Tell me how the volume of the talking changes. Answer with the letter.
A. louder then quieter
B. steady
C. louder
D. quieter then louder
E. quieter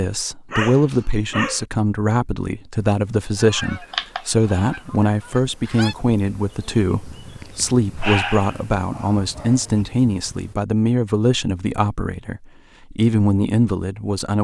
B.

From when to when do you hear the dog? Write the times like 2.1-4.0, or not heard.
0.5-1.6, 7.4-9.8.